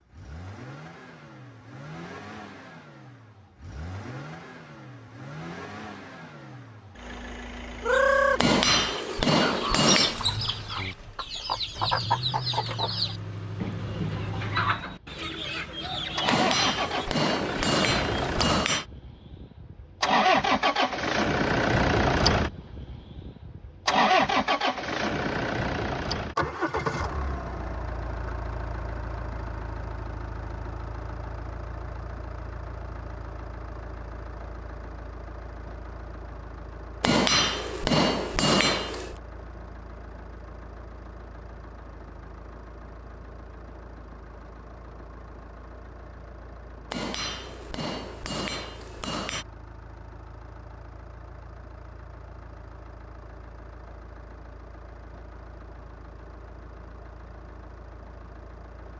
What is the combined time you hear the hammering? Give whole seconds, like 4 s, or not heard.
9 s.